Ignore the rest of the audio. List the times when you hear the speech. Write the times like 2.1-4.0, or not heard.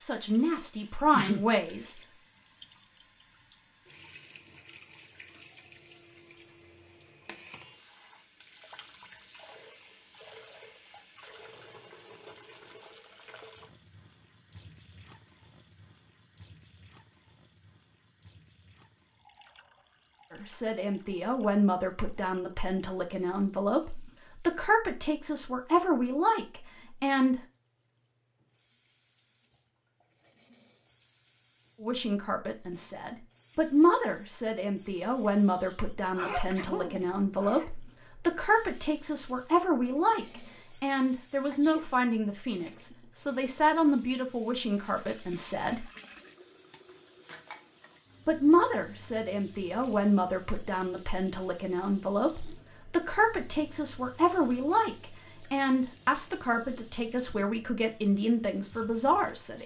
0.0-1.9, 20.3-27.4, 31.8-45.9, 48.2-59.6.